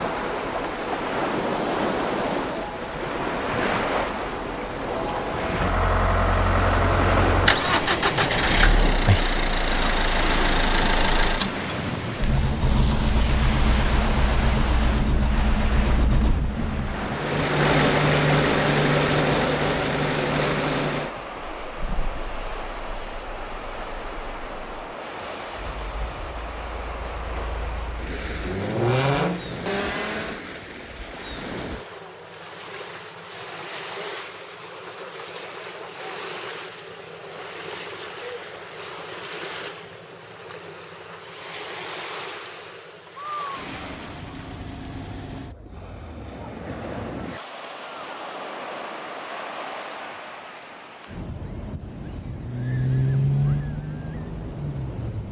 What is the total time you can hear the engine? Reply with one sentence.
You can hear the engine for 28 seconds altogether.